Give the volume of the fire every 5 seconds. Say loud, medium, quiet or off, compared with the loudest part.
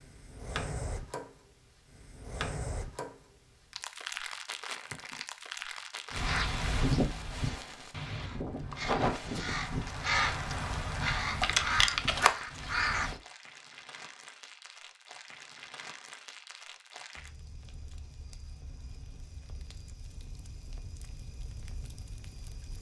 loud, loud, medium, medium, medium.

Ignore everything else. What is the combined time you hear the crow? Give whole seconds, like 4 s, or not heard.
7 s.